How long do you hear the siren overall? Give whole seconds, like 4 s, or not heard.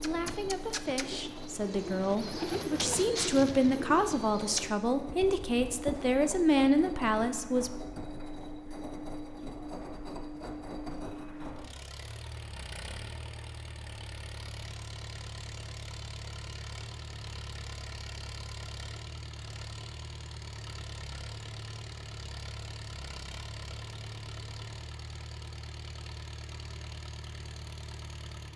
not heard.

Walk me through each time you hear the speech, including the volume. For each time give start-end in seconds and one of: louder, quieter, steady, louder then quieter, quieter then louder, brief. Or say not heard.
0.0-7.7 louder.